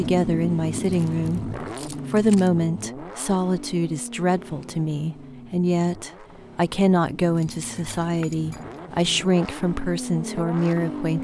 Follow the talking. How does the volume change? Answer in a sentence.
The volume of the talking stays about the same.